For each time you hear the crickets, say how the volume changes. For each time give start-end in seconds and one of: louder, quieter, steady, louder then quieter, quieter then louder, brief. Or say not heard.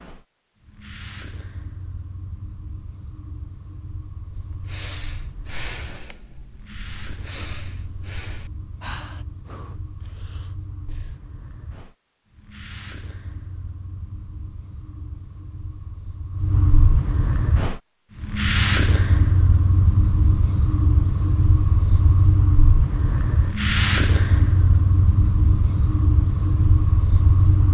0.0-27.7 louder.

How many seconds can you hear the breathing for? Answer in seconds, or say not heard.
7 s.